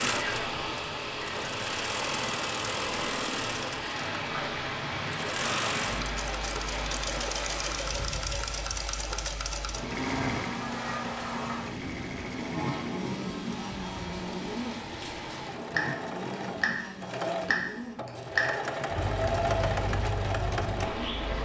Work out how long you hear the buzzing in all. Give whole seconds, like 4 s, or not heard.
12 s.